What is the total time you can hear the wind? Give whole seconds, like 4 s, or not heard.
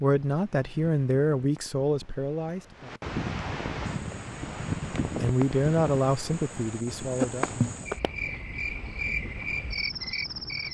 11 s.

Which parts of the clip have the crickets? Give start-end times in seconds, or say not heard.
3.9-10.7.